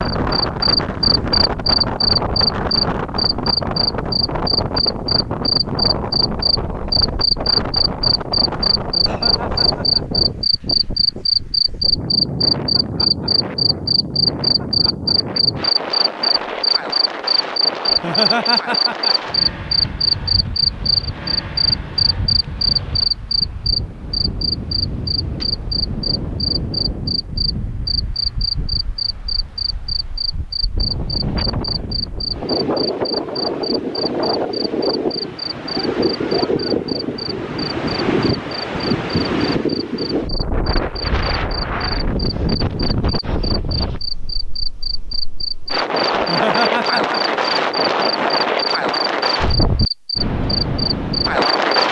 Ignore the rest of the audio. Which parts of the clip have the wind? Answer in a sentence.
The wind can be heard from 0.0 to 51.8 s.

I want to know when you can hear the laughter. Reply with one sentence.
You can hear the laughter from 8.8 to 10.2 s, from 17.9 to 19.1 s and from 46.1 to 47.5 s.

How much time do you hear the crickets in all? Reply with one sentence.
You can hear the crickets for 52 seconds altogether.